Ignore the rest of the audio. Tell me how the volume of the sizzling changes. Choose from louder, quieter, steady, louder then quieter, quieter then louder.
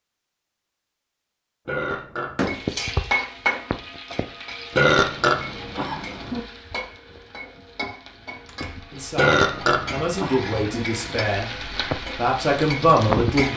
quieter then louder.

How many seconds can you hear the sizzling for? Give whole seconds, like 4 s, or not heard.
11 s.